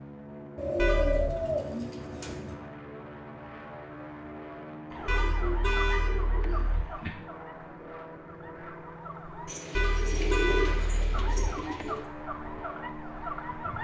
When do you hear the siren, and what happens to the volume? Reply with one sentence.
The siren can be heard from 4.9 to 9.6 s, getting quieter then louder; and briefly from 11.1 to 13.8 s.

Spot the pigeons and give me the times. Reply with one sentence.
The pigeons can be heard from 0.6 to 2.5 s, from 4.9 to 7.1 s and from 9.4 to 12.1 s.